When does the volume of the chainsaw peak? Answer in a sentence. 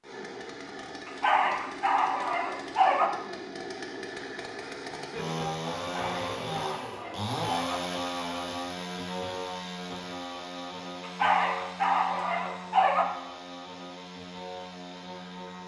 The loudest moment of the chainsaw is at 8 seconds.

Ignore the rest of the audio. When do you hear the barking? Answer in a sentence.
The barking can be heard from 1.1 to 3.1 s, from 5.8 to 7.8 s and from 11.0 to 13.1 s.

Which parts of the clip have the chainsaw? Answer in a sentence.
The chainsaw can be heard from 0.0 to 15.6 s.